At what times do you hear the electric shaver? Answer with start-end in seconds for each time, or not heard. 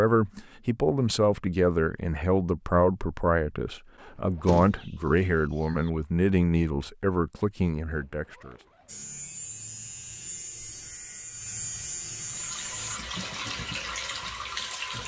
8.8-13.0.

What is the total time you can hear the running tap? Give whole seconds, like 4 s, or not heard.
3 s.